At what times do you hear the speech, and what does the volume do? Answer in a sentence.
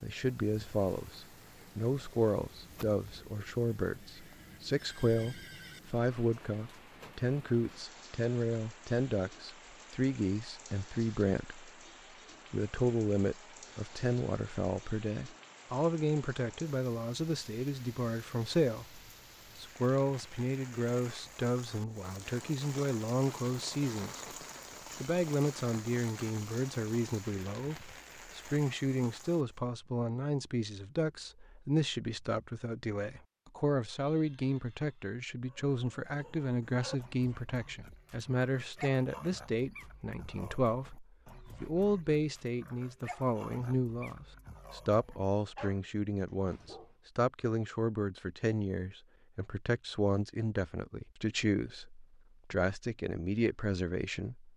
You can hear the speech from 0.0 to 11.7 s, at a steady volume; from 12.5 to 24.2 s, at a steady volume; and from 24.9 to 54.5 s, at a steady volume.